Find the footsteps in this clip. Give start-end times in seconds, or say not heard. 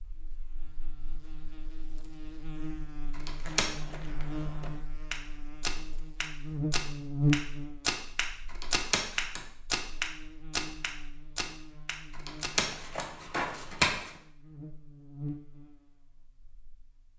3.4-14.2.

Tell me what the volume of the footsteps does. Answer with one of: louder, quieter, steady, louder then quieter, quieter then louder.
louder then quieter.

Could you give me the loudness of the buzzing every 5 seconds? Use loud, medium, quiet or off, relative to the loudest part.
medium, loud, quiet, medium.